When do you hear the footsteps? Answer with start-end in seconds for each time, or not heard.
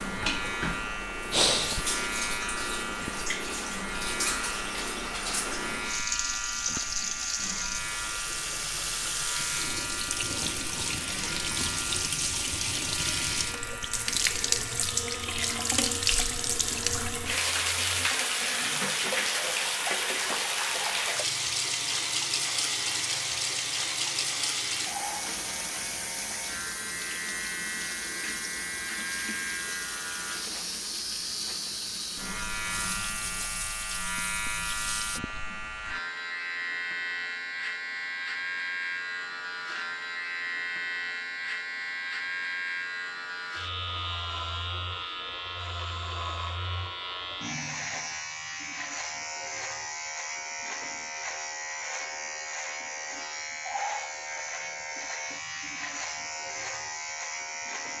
not heard.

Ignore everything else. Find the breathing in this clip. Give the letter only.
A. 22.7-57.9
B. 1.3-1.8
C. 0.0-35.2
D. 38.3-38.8
B.